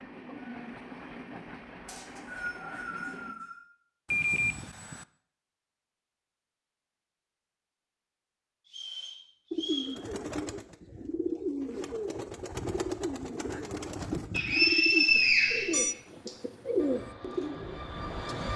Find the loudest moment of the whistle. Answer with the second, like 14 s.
15 s.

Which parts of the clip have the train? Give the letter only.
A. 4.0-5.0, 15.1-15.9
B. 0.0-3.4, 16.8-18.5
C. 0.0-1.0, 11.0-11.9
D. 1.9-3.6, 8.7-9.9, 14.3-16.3
B.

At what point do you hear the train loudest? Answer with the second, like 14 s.
18 s.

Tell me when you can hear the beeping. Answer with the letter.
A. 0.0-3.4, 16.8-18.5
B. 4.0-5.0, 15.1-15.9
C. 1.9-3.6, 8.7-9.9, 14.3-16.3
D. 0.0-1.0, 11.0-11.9
B.